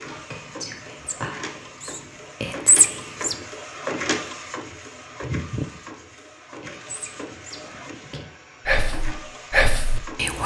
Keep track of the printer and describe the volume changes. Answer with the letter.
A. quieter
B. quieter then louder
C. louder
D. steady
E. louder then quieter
E.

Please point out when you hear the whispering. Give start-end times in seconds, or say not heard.
0.0-3.4, 6.6-10.4.